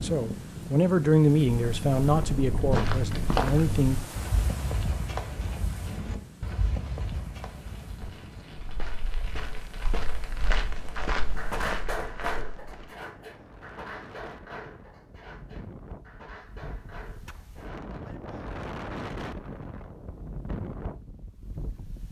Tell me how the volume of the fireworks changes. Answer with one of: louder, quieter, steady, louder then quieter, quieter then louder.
louder then quieter.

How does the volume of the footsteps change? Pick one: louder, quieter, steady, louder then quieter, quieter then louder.
quieter then louder.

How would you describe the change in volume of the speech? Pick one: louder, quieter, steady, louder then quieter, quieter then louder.
quieter.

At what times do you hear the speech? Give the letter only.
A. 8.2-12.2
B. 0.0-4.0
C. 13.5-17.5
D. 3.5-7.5
B.